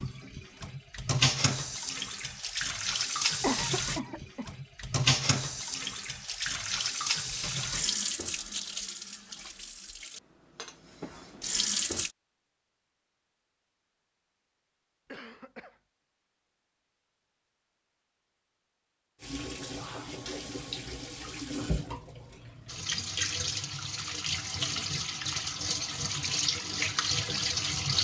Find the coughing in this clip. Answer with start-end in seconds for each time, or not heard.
3.4-4.5, 15.1-15.8.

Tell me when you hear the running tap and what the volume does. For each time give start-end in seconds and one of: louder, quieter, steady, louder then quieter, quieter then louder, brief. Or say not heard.
0.0-12.1 quieter
19.2-27.9 louder.